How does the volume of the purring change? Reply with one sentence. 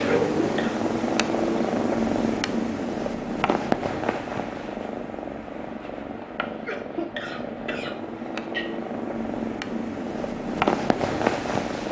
The loudness of the purring goes down, then up.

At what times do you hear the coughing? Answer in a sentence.
The coughing can be heard from 0.1 to 0.8 s and from 6.7 to 8.7 s.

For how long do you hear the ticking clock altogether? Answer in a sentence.
You can't hear the ticking clock here.